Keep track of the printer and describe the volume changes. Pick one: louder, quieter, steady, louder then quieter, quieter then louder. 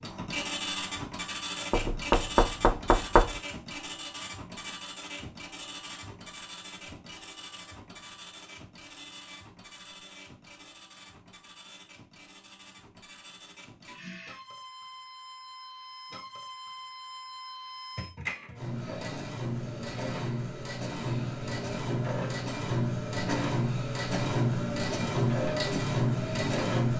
quieter then louder.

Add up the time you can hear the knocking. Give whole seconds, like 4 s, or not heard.
2 s.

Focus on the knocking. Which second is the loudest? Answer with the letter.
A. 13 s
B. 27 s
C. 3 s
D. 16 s
C.